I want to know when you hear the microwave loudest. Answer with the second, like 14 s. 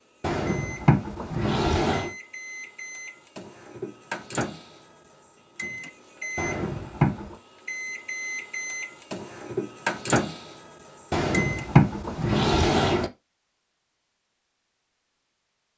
10 s.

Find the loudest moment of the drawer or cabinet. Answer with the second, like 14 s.
12 s.